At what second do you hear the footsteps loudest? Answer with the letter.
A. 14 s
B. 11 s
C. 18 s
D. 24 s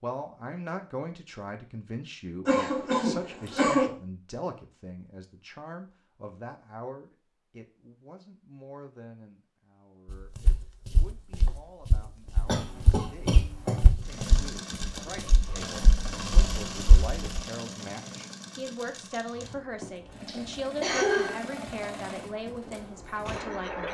A.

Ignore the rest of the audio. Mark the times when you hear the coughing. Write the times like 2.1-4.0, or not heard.
2.5-3.9, 12.4-13.8, 19.8-21.9.